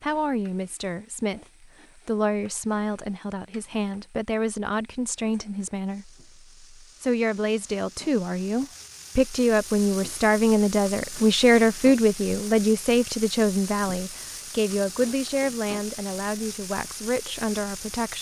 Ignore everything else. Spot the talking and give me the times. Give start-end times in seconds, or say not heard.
0.0-18.1.